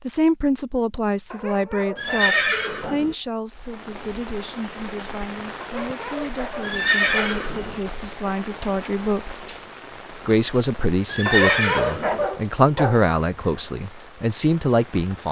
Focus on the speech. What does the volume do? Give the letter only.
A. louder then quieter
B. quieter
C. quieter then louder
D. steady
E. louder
C.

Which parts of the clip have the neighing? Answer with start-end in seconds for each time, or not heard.
1.9-3.1, 6.6-7.8, 11.1-12.3.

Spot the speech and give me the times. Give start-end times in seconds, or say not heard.
0.1-9.6, 10.2-15.2.